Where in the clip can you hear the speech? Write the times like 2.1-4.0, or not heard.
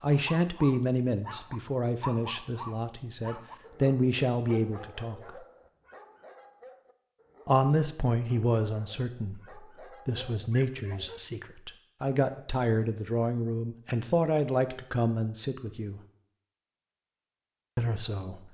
0.0-5.4, 7.5-16.0, 17.8-18.4.